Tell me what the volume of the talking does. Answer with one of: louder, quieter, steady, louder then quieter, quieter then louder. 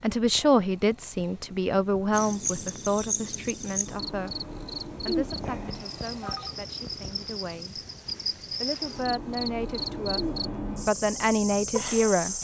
quieter then louder.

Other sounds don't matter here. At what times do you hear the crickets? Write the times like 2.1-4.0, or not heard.
2.1-12.3.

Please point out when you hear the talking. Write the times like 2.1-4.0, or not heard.
0.0-7.8, 8.6-12.3.